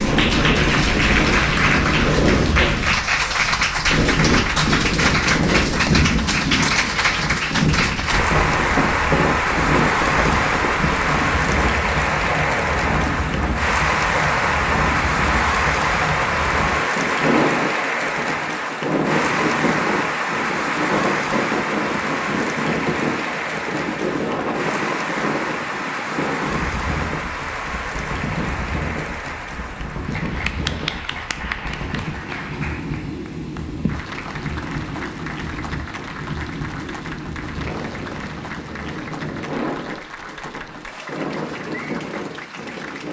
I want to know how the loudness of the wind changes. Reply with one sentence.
The volume of the wind goes down.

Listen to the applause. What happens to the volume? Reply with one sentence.
The volume of the applause goes down.